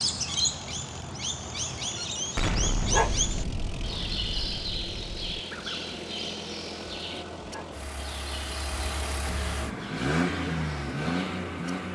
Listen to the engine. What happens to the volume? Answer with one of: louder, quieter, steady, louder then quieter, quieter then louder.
louder.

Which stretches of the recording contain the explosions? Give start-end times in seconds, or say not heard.
2.4-5.4.